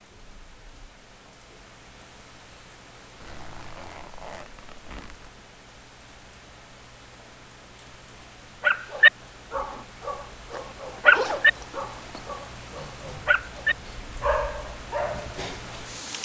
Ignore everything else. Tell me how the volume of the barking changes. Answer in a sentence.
The volume of the barking goes down.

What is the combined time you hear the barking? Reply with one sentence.
The barking can be heard for 7 seconds in total.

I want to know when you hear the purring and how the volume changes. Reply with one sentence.
The purring can't be heard in this clip.